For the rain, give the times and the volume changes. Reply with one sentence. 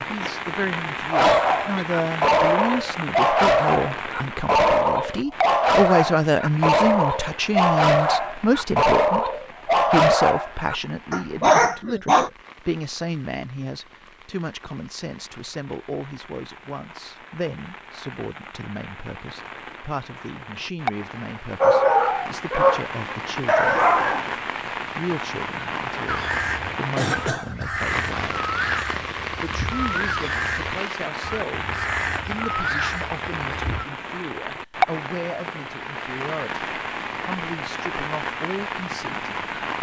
You can hear the rain from 0.0 to 39.7 s, getting quieter then louder.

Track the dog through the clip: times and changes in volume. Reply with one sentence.
You can hear the dog from 1.1 to 12.3 s, at a steady volume; and briefly from 21.6 to 24.3 s.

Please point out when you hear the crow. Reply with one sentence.
The crow can be heard from 26.1 to 33.9 s.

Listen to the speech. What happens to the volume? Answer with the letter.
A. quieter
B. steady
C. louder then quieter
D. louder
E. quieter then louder
A.